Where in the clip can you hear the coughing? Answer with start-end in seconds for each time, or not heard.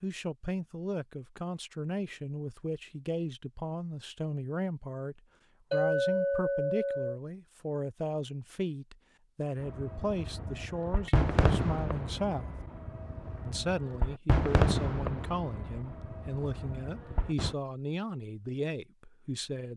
not heard.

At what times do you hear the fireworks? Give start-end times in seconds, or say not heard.
9.6-17.6.